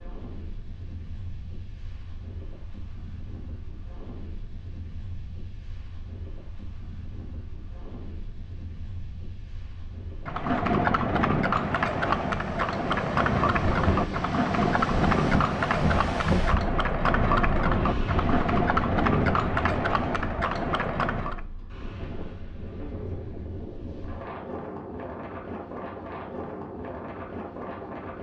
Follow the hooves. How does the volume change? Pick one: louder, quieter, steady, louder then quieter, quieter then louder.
steady.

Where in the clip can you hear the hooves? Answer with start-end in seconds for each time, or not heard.
10.2-21.4.